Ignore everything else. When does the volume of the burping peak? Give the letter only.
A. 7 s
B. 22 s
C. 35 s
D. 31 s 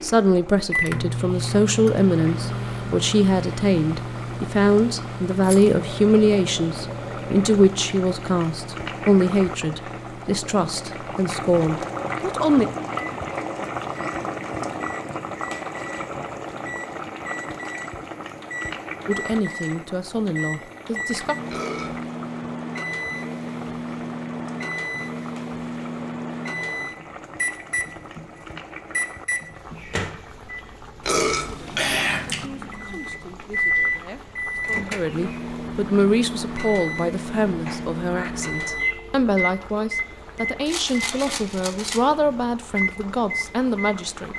D.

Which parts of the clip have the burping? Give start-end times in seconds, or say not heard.
5.8-7.5, 21.4-22.0, 31.0-32.5.